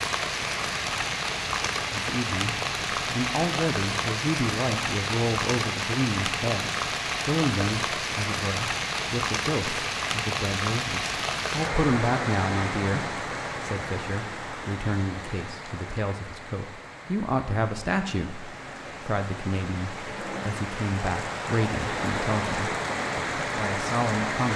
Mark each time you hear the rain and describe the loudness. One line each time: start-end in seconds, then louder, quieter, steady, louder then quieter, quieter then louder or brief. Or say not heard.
0.0-24.5 quieter then louder.